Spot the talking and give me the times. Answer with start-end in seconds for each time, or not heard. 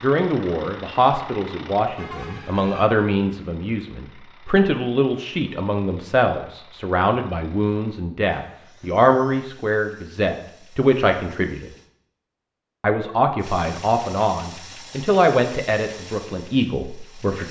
0.0-11.7, 12.8-17.4.